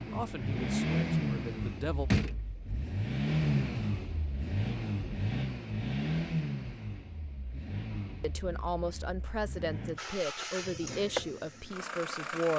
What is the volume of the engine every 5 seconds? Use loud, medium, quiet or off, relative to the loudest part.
loud, medium, medium.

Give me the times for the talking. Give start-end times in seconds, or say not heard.
0.1-2.1, 8.2-12.5.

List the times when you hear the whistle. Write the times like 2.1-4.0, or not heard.
not heard.